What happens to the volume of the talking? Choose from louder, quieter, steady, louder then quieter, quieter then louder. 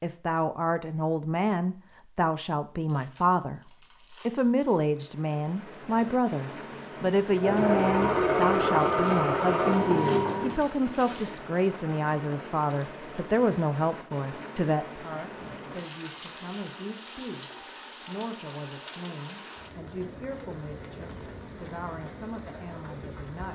quieter.